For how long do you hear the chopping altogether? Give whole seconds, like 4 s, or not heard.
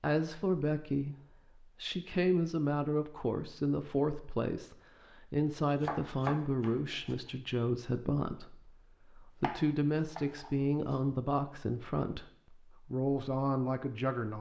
3 s.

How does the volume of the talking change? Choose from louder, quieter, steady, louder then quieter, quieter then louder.
steady.